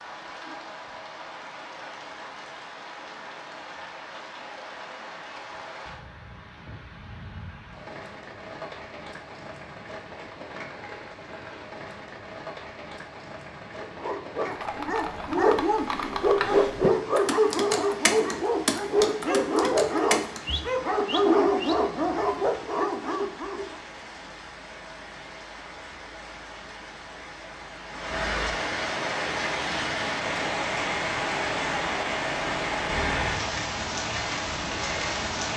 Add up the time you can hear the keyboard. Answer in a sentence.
The keyboard can be heard for 6 seconds in total.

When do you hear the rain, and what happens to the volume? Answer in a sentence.
The rain can be heard from 0.0 to 35.5 s, getting louder.